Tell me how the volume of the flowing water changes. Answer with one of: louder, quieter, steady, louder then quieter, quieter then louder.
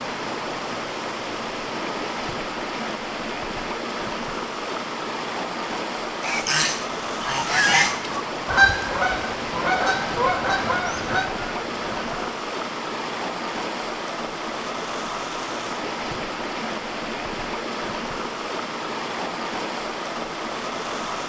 steady.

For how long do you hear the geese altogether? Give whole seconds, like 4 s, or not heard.
6 s.